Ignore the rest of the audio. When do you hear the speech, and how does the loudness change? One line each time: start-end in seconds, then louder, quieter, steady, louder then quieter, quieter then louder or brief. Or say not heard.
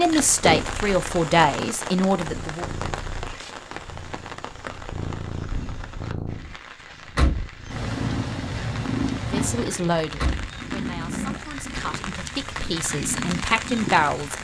0.0-2.6 brief
9.3-14.3 quieter then louder.